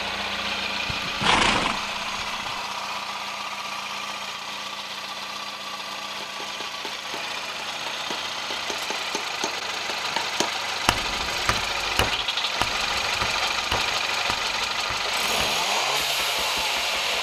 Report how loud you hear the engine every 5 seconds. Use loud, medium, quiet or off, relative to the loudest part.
medium, medium, loud, loud.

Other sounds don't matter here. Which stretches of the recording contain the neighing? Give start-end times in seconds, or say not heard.
0.8-2.6.